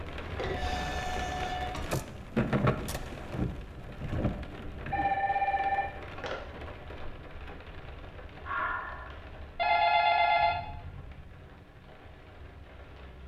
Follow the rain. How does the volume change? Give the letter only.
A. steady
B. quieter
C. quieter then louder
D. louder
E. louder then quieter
B.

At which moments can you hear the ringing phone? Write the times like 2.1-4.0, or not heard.
0.2-1.8, 4.9-6.3, 9.6-10.6.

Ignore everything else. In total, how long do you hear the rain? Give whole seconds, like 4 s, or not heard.
13 s.